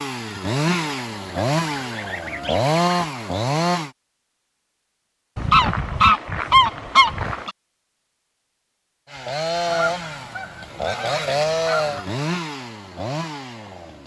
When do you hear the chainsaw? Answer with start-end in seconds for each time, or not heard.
0.0-3.9, 9.1-14.0.